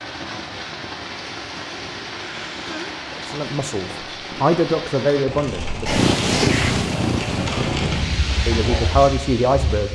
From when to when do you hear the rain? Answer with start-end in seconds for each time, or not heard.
0.0-9.9.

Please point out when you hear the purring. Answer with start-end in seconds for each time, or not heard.
5.7-8.2.